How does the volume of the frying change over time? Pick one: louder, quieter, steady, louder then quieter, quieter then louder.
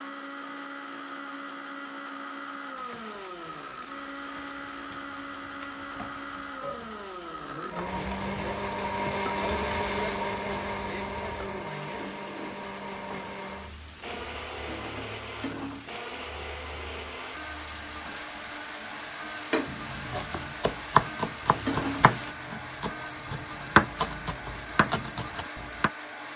louder.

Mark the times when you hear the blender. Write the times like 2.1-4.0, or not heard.
0.0-26.3.